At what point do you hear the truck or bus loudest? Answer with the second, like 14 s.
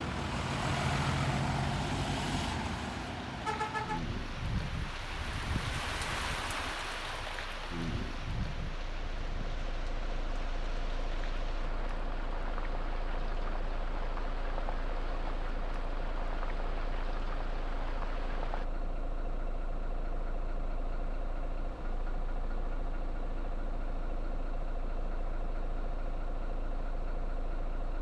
1 s.